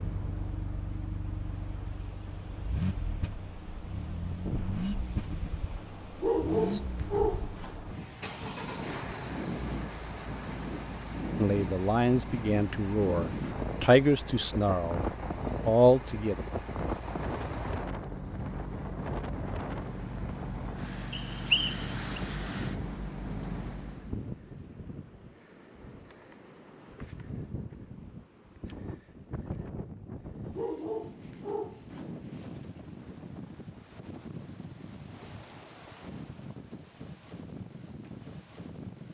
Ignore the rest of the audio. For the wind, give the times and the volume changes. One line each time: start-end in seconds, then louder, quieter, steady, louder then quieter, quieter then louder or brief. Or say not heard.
0.0-39.0 louder then quieter.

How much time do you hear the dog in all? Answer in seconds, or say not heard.
3 s.